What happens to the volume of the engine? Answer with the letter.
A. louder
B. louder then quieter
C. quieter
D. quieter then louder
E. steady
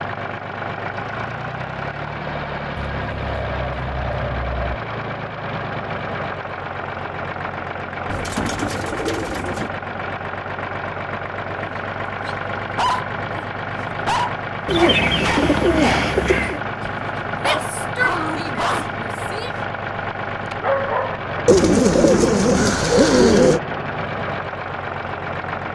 E.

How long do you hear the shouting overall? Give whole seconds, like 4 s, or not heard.
2 s.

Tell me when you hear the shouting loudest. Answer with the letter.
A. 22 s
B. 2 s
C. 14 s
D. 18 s
D.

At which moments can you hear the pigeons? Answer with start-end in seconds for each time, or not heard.
2.8-4.8, 8.1-9.7, 14.7-16.6, 21.4-23.6.